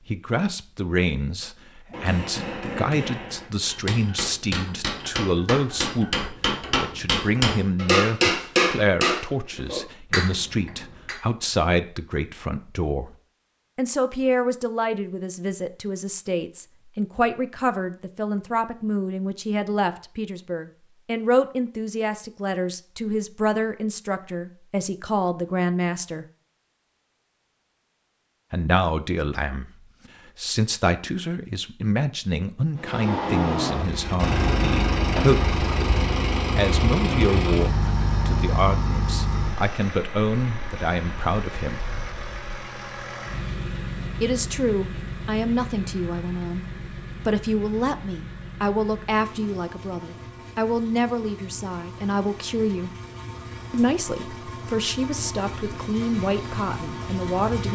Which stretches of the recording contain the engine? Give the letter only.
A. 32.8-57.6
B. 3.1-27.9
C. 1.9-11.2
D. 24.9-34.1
A.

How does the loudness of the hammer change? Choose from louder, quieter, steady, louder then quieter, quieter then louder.
louder then quieter.